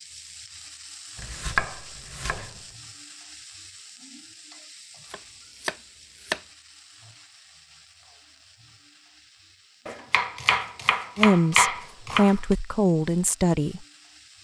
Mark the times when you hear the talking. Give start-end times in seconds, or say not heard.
11.2-13.8.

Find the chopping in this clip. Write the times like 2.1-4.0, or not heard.
1.1-2.6, 5.1-6.4, 9.8-12.6.